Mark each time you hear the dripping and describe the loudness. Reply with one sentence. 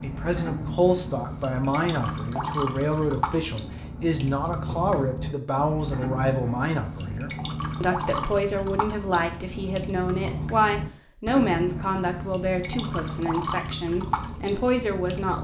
The dripping can be heard from 0.0 to 15.4 s, at a steady volume.